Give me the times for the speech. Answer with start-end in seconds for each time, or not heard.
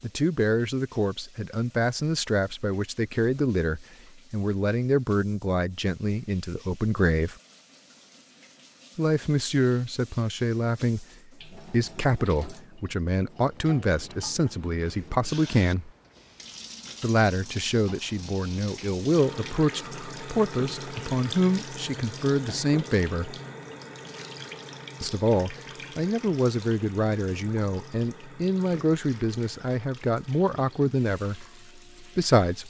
0.0-7.3, 8.9-15.9, 17.0-23.4, 25.0-32.6.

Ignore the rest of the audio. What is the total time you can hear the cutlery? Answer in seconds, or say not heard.
not heard.